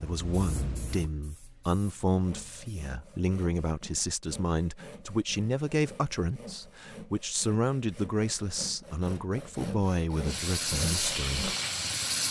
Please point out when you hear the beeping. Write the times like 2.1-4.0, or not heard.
not heard.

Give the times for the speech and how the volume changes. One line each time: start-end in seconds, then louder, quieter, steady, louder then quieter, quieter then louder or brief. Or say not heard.
0.0-11.6 steady.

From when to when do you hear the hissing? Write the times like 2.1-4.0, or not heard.
0.0-2.8, 10.2-12.2.